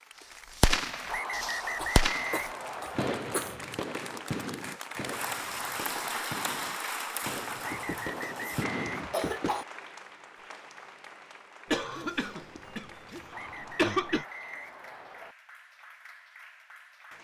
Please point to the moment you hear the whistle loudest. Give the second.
2 s.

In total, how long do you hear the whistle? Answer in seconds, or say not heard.
6 s.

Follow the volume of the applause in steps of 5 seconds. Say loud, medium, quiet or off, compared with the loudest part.
medium, loud, quiet, quiet.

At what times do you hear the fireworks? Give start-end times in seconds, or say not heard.
0.6-9.2.